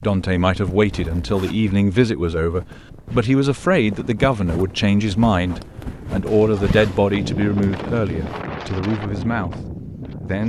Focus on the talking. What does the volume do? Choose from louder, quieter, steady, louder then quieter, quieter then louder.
quieter.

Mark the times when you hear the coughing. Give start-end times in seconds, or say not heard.
not heard.